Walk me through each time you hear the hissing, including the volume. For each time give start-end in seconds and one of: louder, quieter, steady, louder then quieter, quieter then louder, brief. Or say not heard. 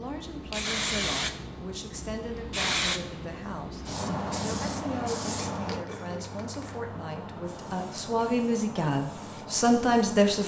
0.0-10.4 quieter.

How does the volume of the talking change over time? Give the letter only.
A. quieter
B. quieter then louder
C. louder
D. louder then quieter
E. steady
C.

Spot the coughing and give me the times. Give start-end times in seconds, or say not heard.
5.5-6.4.